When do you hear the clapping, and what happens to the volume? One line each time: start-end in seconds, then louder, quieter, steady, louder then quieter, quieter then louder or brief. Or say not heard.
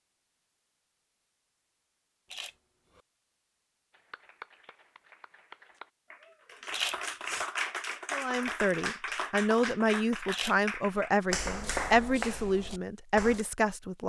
3.9-13.4 louder.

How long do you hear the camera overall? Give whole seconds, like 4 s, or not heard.
2 s.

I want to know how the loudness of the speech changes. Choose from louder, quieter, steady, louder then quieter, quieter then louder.
steady.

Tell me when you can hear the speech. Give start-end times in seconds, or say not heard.
8.1-14.0.